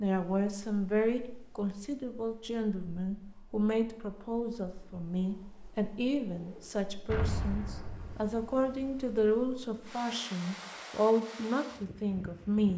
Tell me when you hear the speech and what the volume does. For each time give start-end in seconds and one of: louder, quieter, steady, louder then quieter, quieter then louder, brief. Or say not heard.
0.0-12.7 steady.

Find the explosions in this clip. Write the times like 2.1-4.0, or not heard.
7.0-9.2.